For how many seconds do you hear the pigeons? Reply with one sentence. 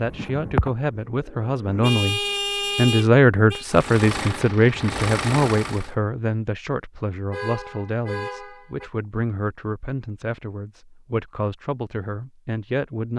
The pigeons can be heard for 2 seconds in total.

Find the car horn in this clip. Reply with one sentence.
The car horn can be heard from 1.8 to 3.6 s and from 7.3 to 8.9 s.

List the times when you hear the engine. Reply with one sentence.
The engine can be heard from 3.6 to 6.0 s.